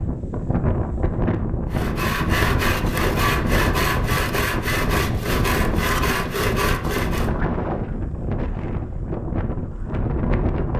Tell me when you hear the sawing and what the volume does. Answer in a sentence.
The sawing can be heard from 1.7 to 7.3 s, at a steady volume.